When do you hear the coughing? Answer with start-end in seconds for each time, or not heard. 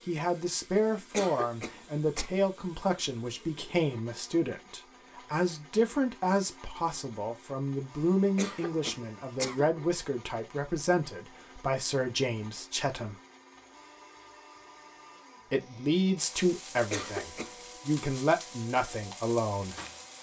1.1-2.3, 8.3-9.7, 16.9-17.6.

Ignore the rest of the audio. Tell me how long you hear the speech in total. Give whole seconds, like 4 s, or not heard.
17 s.